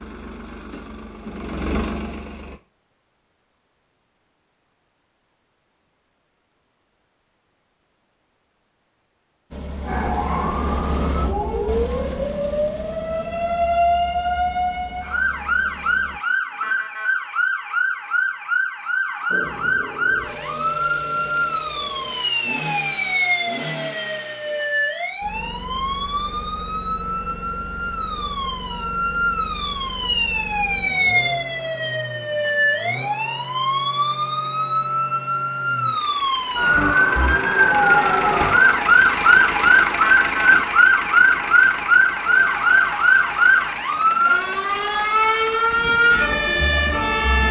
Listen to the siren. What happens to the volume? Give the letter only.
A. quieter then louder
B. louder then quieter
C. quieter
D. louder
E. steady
D.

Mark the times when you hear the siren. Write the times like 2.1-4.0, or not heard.
9.8-47.4.